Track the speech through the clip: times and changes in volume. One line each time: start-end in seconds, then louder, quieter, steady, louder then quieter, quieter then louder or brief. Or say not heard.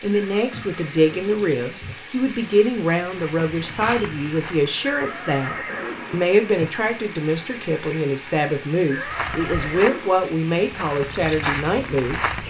0.0-12.3 steady.